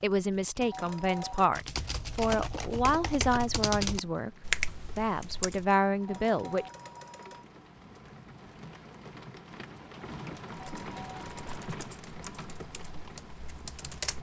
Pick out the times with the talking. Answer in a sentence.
The talking can be heard from 0.0 to 6.7 s.